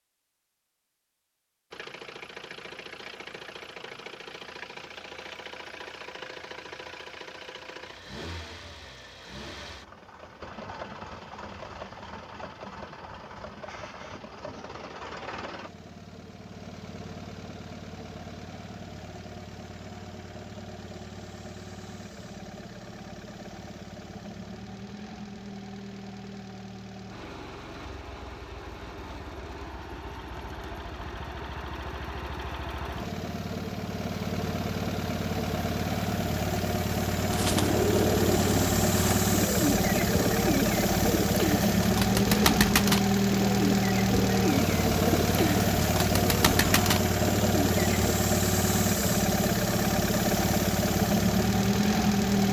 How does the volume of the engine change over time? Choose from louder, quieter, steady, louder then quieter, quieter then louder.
louder.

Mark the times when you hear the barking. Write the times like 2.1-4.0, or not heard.
not heard.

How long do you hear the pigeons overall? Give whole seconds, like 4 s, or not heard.
11 s.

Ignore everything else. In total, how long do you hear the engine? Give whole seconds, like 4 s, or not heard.
51 s.